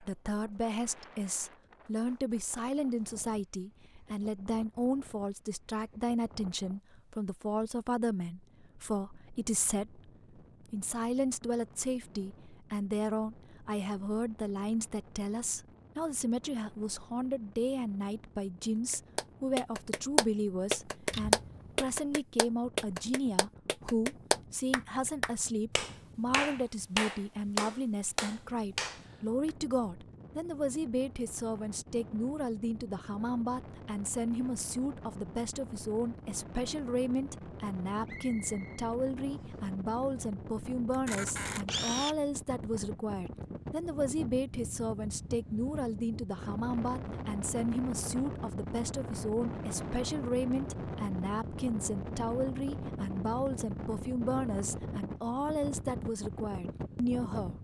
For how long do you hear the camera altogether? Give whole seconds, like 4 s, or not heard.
2 s.